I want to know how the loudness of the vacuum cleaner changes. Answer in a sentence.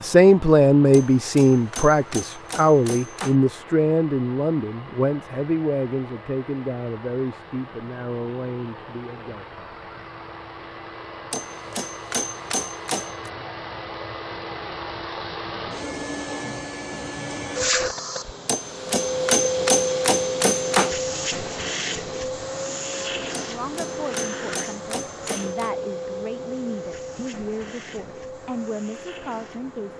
The volume of the vacuum cleaner goes up, then down.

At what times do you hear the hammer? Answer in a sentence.
You can hear the hammer from 0.9 to 3.4 s, from 11.3 to 13.3 s, from 18.4 to 20.9 s and from 23.3 to 25.7 s.